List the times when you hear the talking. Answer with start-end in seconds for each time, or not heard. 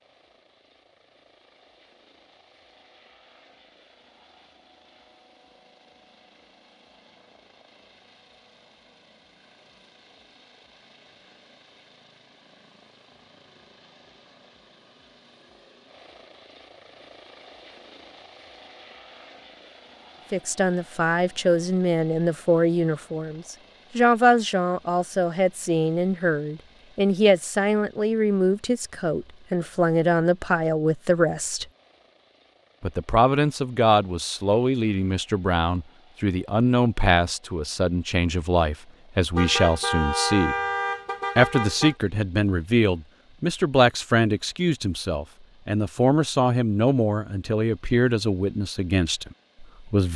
20.3-31.6, 32.8-40.5, 41.4-50.1.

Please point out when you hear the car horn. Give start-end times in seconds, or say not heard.
39.4-42.0.